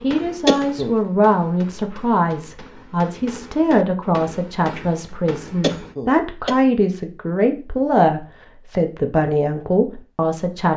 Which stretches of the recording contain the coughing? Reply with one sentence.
You can hear the coughing from 0.5 to 0.9 s and from 5.6 to 6.5 s.